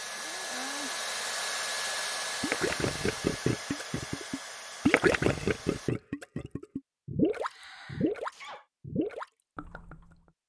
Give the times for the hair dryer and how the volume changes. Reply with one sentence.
The hair dryer can be heard from 0.0 to 5.9 s, getting quieter.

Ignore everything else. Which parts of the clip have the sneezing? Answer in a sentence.
The sneezing can be heard from 0.0 to 1.0 s and from 7.4 to 8.7 s.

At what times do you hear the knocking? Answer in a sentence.
You can't hear the knocking here.